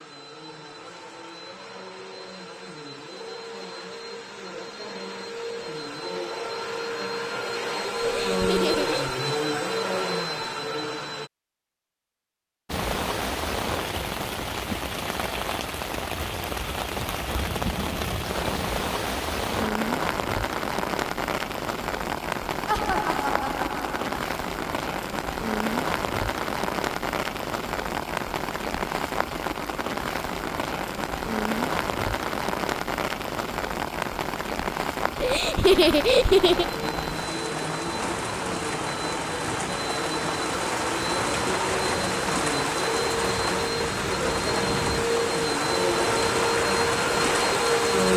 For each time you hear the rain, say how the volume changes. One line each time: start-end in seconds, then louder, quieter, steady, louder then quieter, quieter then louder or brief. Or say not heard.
12.7-48.1 steady.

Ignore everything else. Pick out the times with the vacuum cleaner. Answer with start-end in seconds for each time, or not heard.
0.0-11.3, 36.5-48.1.